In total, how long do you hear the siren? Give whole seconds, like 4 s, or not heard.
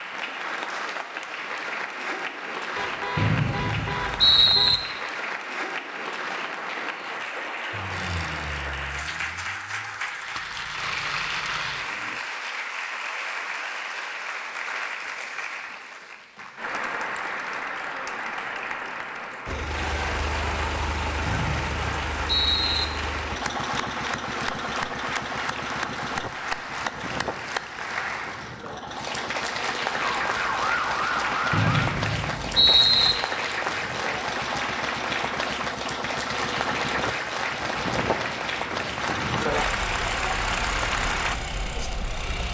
2 s.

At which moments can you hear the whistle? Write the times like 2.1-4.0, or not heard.
3.1-4.8, 21.2-22.9, 31.5-33.1.